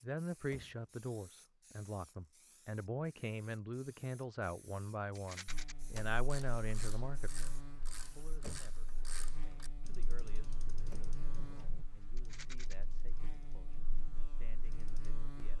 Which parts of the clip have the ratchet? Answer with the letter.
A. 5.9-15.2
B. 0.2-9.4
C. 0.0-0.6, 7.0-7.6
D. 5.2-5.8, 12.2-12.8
A.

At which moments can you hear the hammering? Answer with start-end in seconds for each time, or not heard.
not heard.